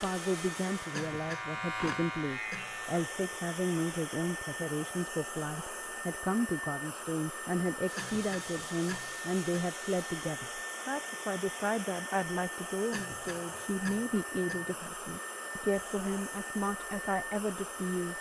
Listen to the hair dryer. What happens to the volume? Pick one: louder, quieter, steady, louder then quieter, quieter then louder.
steady.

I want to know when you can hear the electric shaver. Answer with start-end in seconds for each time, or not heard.
0.0-3.0.